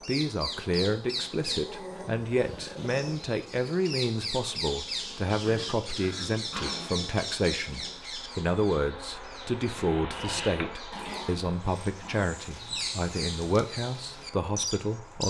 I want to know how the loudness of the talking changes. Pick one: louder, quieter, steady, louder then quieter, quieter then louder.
steady.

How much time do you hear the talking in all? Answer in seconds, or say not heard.
15 s.